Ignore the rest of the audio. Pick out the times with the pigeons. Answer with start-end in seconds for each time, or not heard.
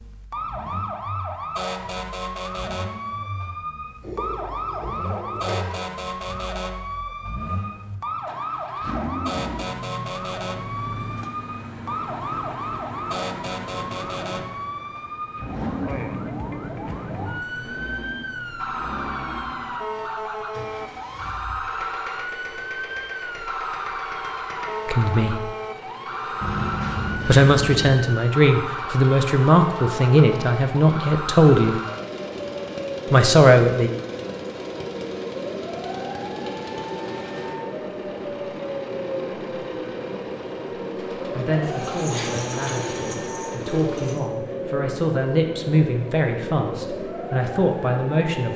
4.0-5.9, 26.4-27.9, 41.6-44.2.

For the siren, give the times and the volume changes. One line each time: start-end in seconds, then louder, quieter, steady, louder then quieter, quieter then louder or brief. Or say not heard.
0.0-48.5 steady.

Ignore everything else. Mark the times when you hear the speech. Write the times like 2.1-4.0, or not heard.
24.9-25.5, 27.2-31.8, 33.1-33.9, 41.4-48.5.